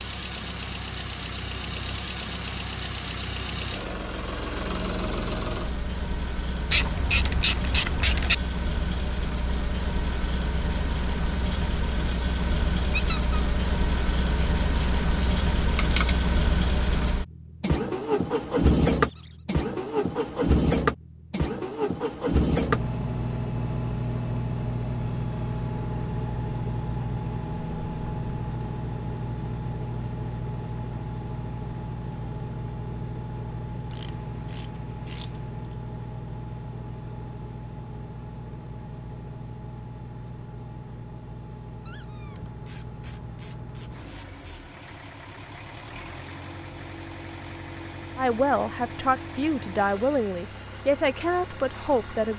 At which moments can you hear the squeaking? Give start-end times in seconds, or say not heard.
12.9-13.4, 18.9-19.4, 41.9-42.4.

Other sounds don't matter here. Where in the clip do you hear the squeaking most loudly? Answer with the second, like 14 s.
13 s.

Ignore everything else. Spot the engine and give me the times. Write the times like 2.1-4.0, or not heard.
0.0-52.3.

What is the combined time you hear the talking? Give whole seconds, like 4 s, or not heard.
4 s.